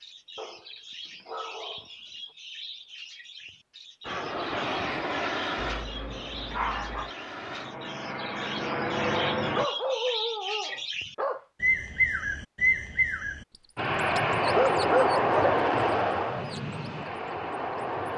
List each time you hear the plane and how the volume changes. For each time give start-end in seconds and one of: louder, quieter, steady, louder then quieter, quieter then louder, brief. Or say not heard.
4.0-9.7 quieter then louder
13.8-18.1 quieter.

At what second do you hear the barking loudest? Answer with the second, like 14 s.
15 s.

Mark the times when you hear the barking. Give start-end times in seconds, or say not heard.
0.3-1.9, 5.5-7.1, 9.5-11.4, 14.4-15.7.